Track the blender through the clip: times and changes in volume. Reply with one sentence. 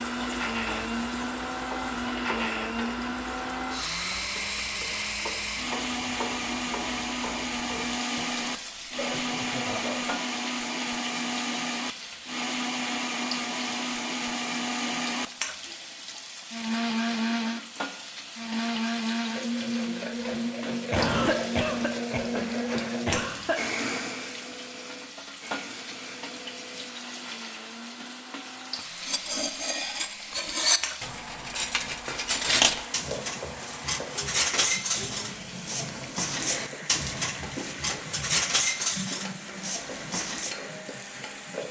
You can hear the blender from 0.0 to 41.6 s, getting quieter.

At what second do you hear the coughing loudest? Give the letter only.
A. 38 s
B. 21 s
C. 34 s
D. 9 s
B.